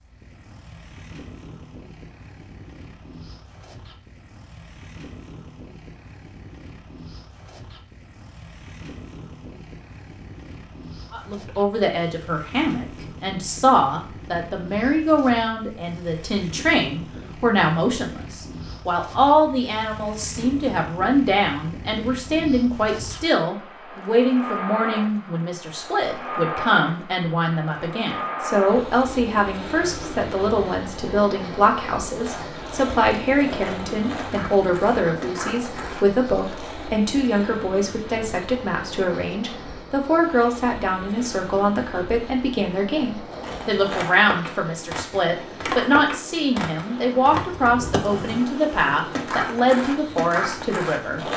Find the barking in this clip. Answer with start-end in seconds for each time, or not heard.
not heard.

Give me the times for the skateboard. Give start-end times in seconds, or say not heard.
32.0-37.0, 43.2-51.3.